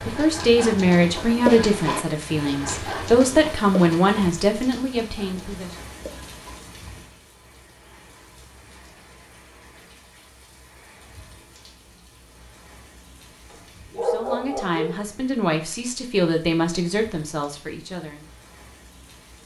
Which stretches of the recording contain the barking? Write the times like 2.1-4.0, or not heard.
13.5-15.0.